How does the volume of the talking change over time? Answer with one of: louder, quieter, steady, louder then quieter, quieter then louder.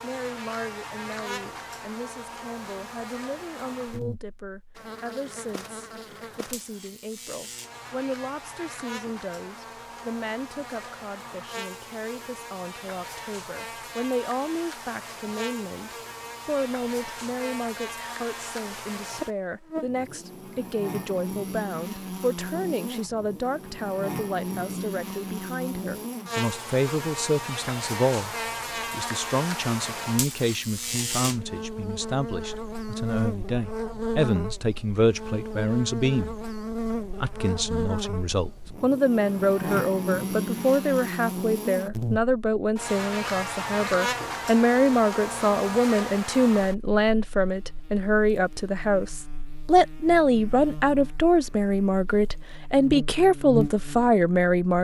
louder.